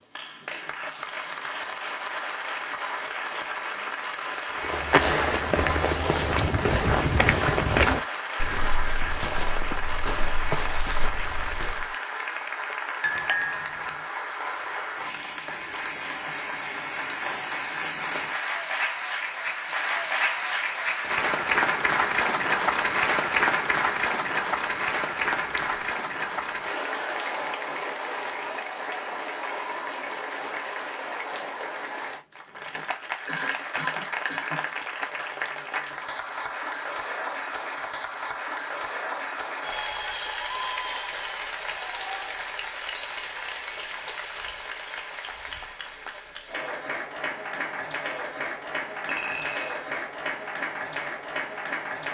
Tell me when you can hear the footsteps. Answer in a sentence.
You can hear the footsteps from 4.5 to 11.9 s.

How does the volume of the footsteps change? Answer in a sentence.
The loudness of the footsteps goes down.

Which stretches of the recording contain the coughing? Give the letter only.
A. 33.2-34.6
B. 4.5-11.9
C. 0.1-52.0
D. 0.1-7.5
A.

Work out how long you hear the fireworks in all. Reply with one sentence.
You can't hear the fireworks here.